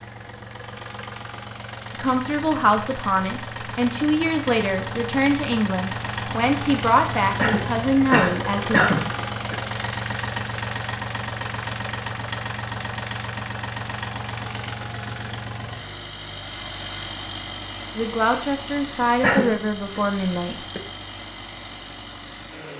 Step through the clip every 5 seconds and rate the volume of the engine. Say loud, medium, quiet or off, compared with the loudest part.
medium, loud, loud, medium, medium.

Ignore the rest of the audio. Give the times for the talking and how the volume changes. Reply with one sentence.
You can hear the talking from 2.0 to 8.8 s, at a steady volume; and briefly from 17.9 to 20.8 s.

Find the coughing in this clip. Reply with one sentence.
You can hear the coughing from 7.3 to 9.6 s and from 19.2 to 20.0 s.